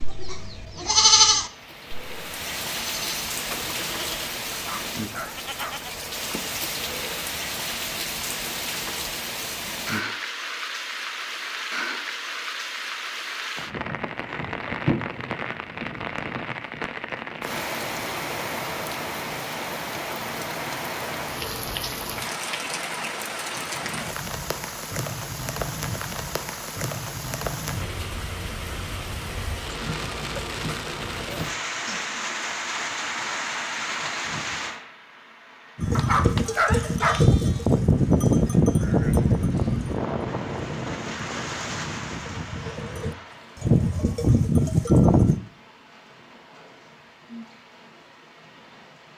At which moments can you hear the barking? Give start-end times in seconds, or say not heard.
4.5-5.8, 36.0-37.2.